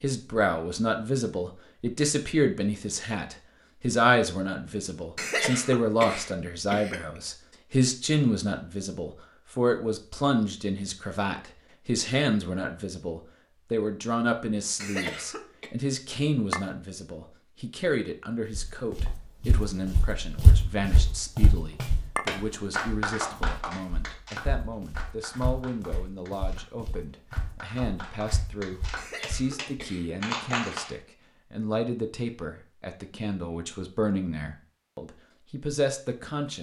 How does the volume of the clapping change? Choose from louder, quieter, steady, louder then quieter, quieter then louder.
quieter then louder.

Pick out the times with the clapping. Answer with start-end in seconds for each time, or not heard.
21.8-26.7, 27.3-30.9.